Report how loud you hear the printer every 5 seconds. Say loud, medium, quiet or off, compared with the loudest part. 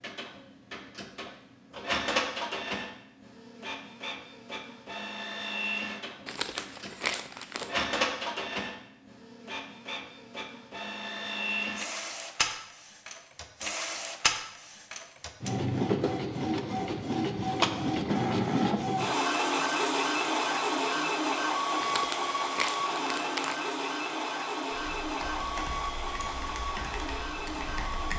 medium, medium, medium, loud, loud, medium.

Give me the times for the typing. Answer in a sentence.
The typing can be heard from 24.7 to 28.1 s.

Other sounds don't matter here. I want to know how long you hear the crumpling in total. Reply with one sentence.
The crumpling can be heard for 3 seconds in total.